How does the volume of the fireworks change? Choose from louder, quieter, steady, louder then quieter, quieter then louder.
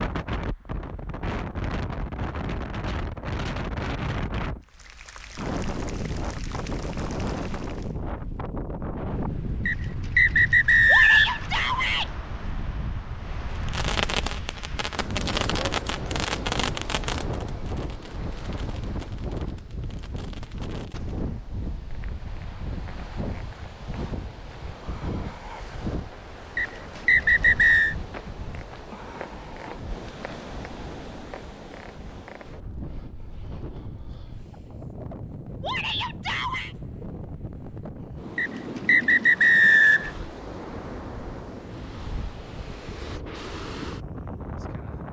quieter.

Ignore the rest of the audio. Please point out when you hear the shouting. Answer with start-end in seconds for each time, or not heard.
10.8-12.1, 35.6-36.8.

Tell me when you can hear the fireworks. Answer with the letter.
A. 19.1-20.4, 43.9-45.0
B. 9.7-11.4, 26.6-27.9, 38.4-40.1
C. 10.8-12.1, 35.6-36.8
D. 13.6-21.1
D.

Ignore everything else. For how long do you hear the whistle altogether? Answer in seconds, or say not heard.
5 s.